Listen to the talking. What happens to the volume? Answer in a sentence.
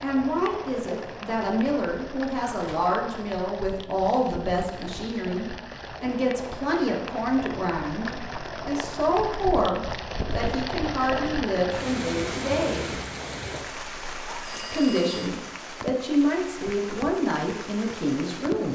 The volume of the talking stays about the same.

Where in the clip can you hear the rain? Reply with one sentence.
You can hear the rain from 0.0 to 18.6 s.